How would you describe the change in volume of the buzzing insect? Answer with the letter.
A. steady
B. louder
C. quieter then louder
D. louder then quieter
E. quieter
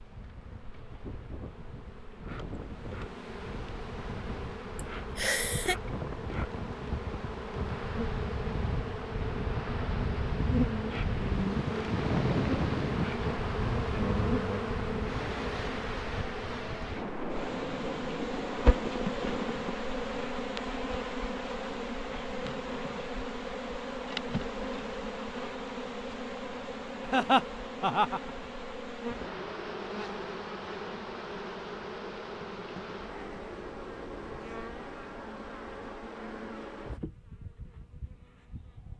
D.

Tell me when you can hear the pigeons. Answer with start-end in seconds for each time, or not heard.
not heard.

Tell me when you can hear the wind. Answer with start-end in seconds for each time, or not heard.
0.0-19.8.